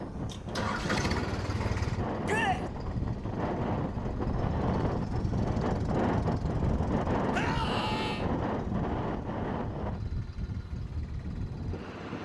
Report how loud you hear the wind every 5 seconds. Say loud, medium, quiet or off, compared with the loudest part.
loud, loud, medium.